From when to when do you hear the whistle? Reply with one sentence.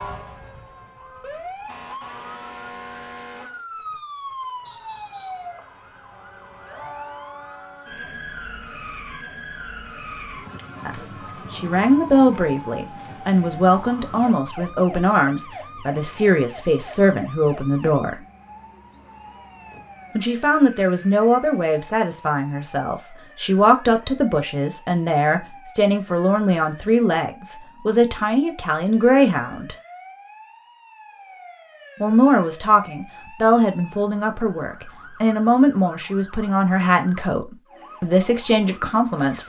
You can hear the whistle from 4.7 to 5.5 s.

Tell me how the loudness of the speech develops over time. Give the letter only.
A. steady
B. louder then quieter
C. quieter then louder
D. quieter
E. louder
A.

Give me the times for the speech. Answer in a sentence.
You can hear the speech from 10.8 to 18.2 s, from 20.1 to 29.8 s and from 32.0 to 39.4 s.